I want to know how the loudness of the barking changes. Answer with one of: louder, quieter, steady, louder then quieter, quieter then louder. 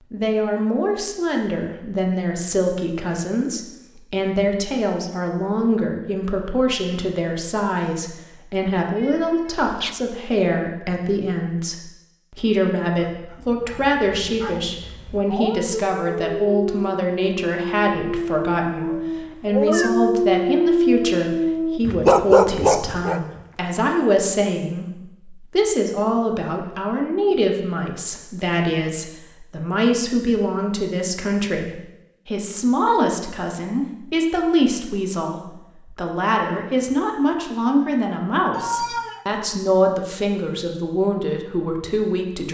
louder.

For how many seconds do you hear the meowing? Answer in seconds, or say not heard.
3 s.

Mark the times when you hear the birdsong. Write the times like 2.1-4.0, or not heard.
not heard.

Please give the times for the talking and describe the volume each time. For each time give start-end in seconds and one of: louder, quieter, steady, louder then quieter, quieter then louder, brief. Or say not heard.
0.1-42.4 steady.